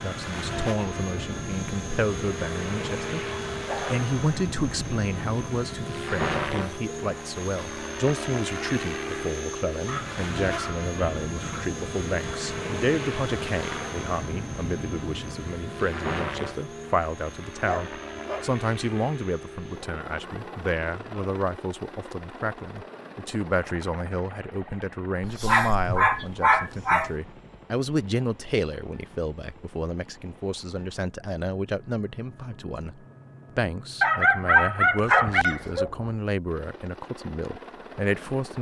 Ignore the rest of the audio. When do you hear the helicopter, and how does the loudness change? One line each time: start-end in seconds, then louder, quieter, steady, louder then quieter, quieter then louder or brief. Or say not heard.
0.0-38.5 quieter.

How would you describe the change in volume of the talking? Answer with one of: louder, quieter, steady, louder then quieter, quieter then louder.
steady.